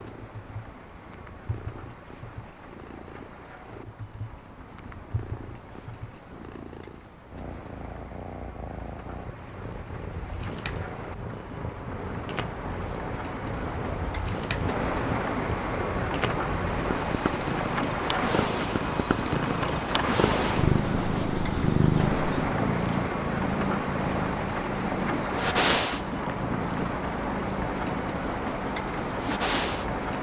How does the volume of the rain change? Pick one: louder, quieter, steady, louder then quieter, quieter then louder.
louder.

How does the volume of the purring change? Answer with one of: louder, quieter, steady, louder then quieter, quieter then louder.
louder.